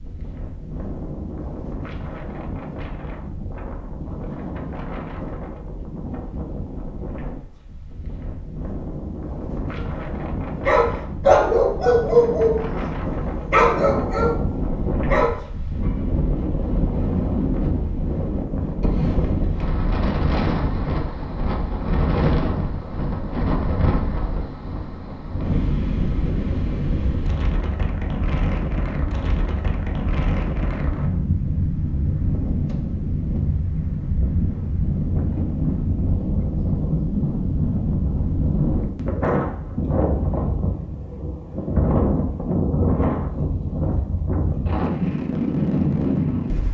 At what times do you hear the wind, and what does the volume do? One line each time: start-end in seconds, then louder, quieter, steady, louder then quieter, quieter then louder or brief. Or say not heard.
0.0-46.7 louder.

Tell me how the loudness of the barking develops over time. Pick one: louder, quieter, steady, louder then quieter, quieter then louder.
quieter.